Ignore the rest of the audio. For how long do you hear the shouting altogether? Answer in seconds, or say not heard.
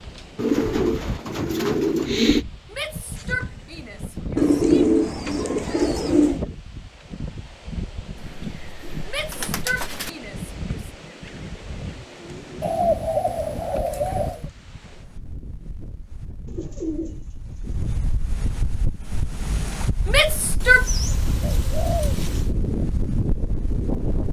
5 s.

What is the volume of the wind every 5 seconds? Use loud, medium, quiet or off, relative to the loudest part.
medium, medium, medium, medium, loud.